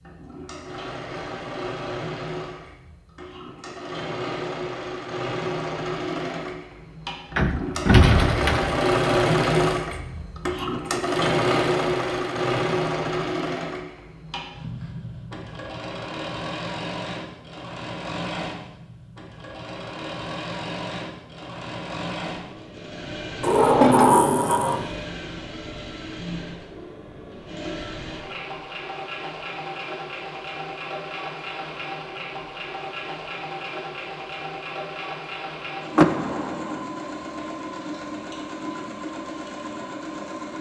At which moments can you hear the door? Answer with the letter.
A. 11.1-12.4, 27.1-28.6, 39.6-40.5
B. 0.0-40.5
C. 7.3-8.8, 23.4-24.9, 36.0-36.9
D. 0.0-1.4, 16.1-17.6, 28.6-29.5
C.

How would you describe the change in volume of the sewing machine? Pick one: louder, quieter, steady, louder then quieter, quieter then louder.
louder then quieter.